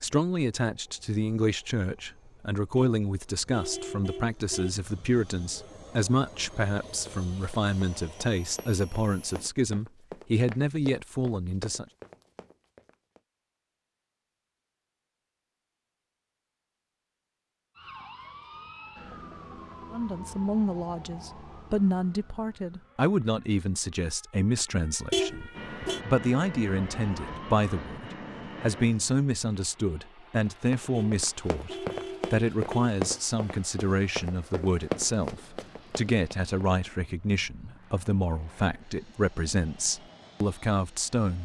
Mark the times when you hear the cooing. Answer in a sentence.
You can't hear the cooing here.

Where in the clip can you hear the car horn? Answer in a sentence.
The car horn can be heard from 2.8 to 4.7 s, from 25.1 to 26.0 s and from 30.9 to 32.9 s.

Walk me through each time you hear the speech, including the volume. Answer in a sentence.
The speech can be heard from 0.0 to 11.8 s, at a steady volume; and from 19.9 to 41.4 s, at a steady volume.